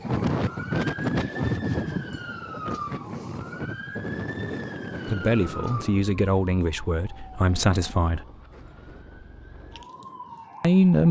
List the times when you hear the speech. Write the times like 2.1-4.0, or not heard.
5.0-8.2, 10.6-11.0.